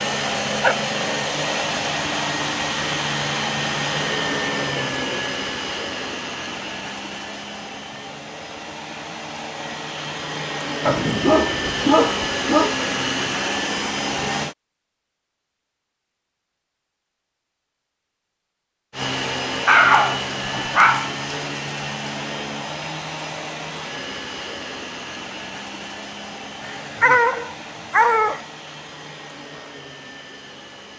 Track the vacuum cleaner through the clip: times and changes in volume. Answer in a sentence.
You can hear the vacuum cleaner from 0.0 to 14.6 s, getting quieter then louder; and from 18.9 to 30.9 s, getting quieter.